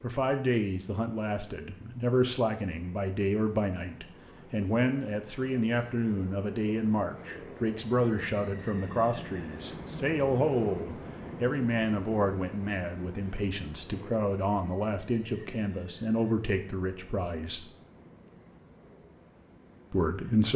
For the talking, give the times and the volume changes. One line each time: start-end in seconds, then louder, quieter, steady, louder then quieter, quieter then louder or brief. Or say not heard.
0.0-17.7 steady
19.9-20.5 brief.